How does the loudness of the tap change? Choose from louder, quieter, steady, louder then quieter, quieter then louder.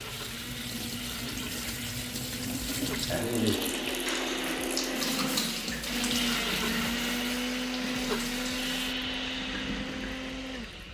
louder then quieter.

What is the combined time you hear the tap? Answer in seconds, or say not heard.
11 s.